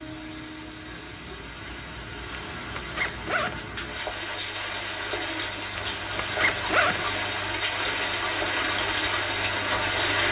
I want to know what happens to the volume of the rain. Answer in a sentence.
The loudness of the rain goes up.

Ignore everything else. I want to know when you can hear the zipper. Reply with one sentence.
The zipper can be heard from 2.3 to 3.6 s and from 5.8 to 7.0 s.